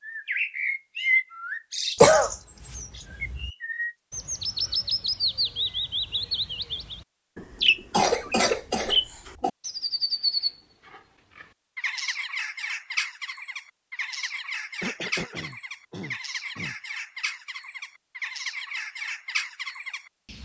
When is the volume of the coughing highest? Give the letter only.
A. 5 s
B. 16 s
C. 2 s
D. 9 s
C.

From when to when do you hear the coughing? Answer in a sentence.
You can hear the coughing from 2.0 to 3.5 s, from 7.9 to 9.5 s and from 14.8 to 16.8 s.